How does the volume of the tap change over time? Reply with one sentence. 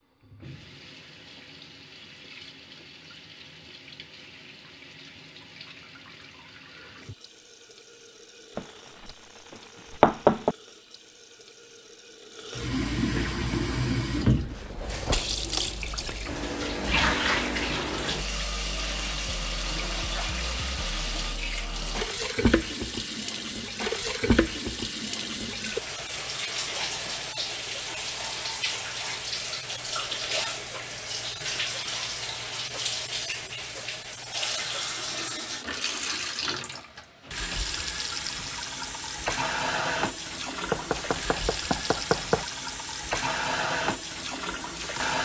The loudness of the tap goes up.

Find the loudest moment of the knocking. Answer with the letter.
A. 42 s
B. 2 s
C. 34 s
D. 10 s
D.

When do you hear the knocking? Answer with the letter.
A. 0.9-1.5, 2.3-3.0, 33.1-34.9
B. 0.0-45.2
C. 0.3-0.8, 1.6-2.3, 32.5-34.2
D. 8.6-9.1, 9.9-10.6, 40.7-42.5
D.